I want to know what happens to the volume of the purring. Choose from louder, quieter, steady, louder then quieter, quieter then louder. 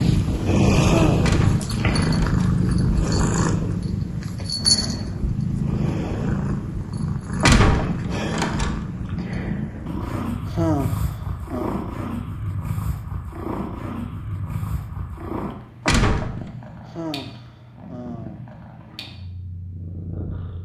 quieter.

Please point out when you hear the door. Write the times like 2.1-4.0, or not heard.
1.2-2.6, 7.4-8.8, 15.8-16.4.